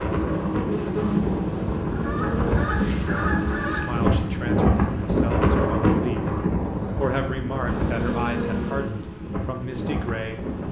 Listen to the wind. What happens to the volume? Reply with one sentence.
The loudness of the wind goes up, then down.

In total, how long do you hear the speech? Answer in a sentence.
The speech can be heard for 6 seconds in total.